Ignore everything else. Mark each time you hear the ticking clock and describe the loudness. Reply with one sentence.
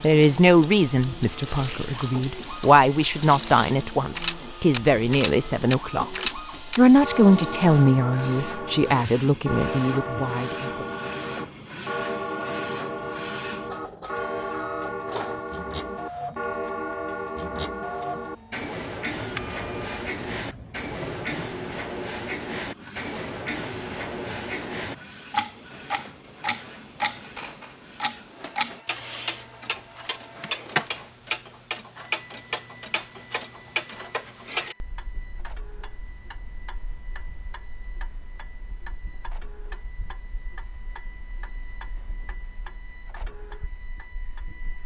You can hear the ticking clock from 0.0 to 44.8 s, getting quieter.